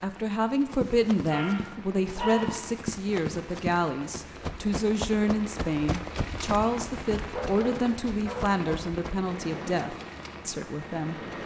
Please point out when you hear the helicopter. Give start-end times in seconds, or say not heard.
9.2-11.4.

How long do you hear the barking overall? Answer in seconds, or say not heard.
3 s.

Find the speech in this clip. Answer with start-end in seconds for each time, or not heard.
0.0-11.2.